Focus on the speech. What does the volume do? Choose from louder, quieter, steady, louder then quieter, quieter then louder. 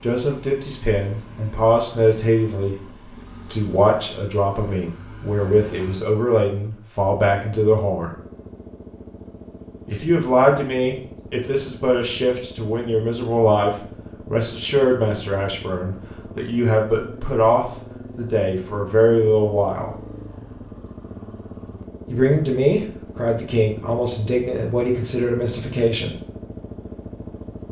steady.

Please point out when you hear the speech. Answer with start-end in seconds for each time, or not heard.
0.0-8.1, 9.8-19.9, 22.1-26.1.